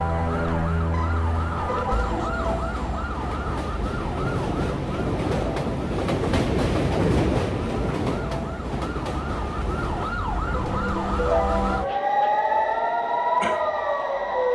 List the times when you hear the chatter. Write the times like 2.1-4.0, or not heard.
not heard.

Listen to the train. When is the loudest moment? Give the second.
7 s.